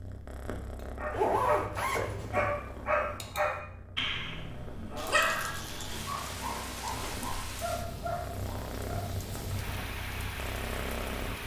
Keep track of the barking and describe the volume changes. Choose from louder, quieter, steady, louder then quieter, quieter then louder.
quieter.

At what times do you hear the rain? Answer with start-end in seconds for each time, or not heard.
5.0-11.4.